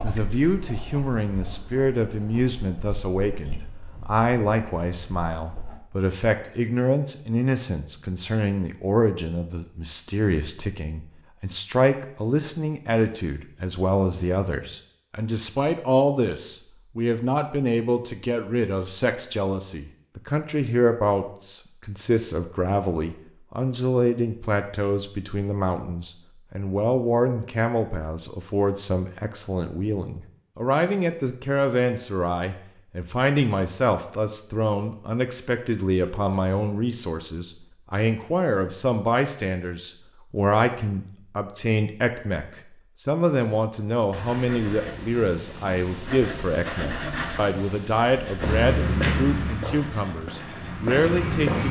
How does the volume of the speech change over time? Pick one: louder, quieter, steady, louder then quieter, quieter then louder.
steady.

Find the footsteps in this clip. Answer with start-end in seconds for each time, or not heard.
48.4-51.6.